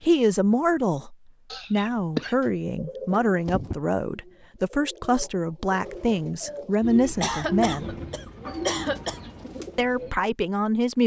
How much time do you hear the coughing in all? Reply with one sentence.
The coughing can be heard for 3 seconds in total.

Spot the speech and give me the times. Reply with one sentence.
You can hear the speech from 0.0 to 7.9 s and from 9.8 to 11.0 s.